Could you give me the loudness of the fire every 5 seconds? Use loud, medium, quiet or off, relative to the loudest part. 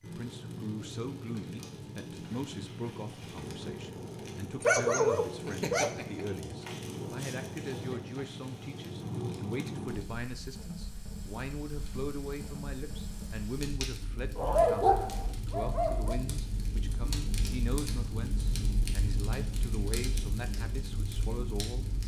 loud, loud, medium, loud, loud.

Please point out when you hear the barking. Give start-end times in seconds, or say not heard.
4.6-6.2, 14.3-16.2.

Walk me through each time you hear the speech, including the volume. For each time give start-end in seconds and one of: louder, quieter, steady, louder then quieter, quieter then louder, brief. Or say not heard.
0.0-21.9 steady.